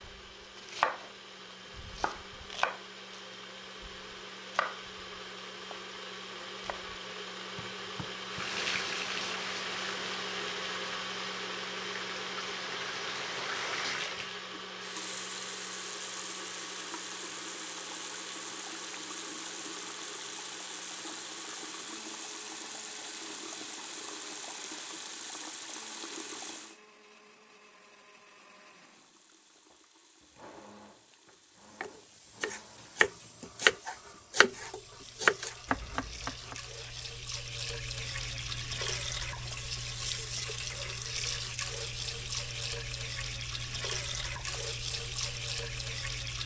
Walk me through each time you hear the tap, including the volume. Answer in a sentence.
You can hear the tap from 8.2 to 26.8 s, at a steady volume; and from 28.8 to 46.4 s, getting louder.